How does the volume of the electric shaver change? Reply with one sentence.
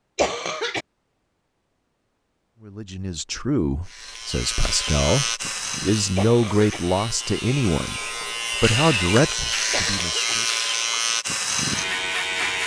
The loudness of the electric shaver goes down, then up.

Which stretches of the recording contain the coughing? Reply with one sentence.
You can hear the coughing from 0.1 to 0.8 s, from 6.2 to 6.8 s and from 9.7 to 10.3 s.